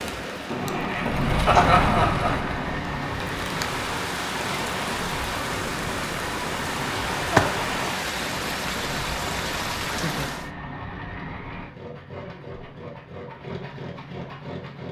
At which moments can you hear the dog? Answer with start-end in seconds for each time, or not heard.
not heard.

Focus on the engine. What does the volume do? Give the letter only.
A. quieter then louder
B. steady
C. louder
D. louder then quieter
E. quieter
E.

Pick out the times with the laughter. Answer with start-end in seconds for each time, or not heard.
1.4-2.4.